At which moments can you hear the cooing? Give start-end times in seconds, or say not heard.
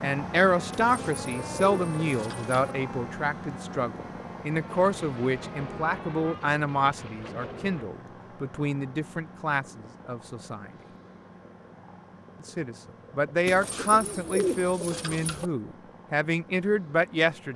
0.7-2.8, 13.4-15.5.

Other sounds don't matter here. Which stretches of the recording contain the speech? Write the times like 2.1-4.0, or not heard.
0.0-10.7, 12.4-17.5.